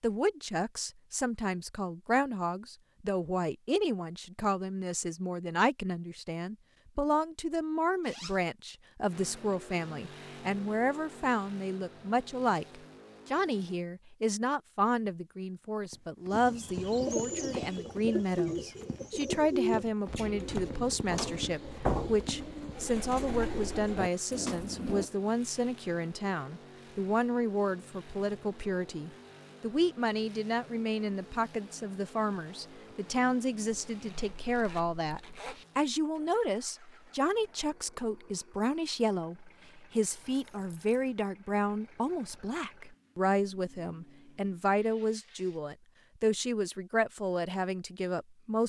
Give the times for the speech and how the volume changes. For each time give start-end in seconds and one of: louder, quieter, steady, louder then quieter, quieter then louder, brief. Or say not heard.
0.0-48.6 steady.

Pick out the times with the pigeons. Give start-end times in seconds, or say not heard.
16.3-25.1.